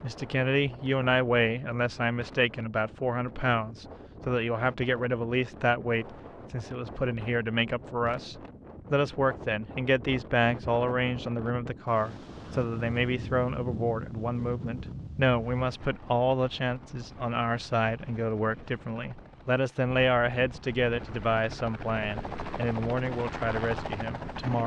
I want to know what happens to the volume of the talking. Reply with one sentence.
The loudness of the talking stays about the same.